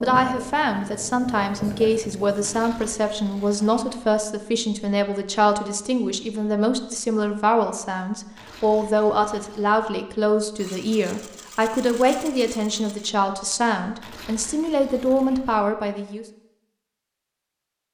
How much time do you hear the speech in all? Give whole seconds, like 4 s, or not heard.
16 s.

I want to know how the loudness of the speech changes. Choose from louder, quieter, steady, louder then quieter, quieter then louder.
steady.